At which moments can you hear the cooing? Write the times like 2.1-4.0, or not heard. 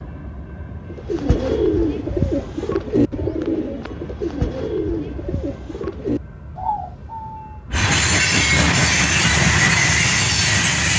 0.9-7.6.